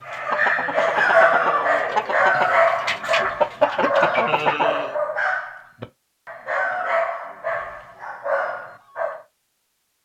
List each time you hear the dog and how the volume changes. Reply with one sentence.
You can hear the dog from 0.1 to 9.2 s, getting quieter.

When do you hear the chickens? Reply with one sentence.
You can hear the chickens from 0.0 to 5.0 s.